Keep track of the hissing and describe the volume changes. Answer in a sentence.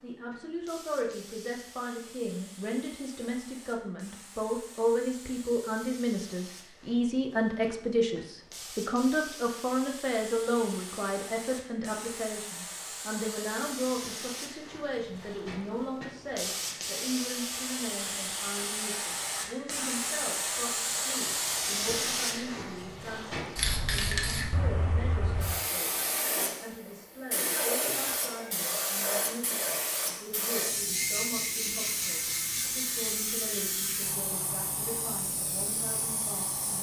The loudness of the hissing goes up.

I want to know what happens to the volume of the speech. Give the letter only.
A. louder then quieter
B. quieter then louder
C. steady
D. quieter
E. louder
D.